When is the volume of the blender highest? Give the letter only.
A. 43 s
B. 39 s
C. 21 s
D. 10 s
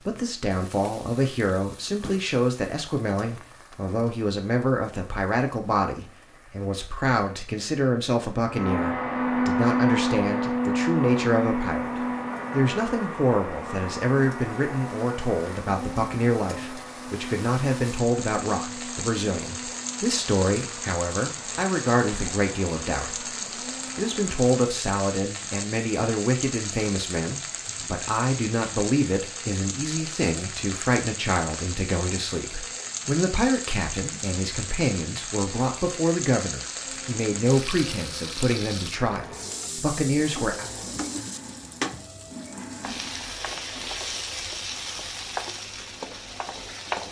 D.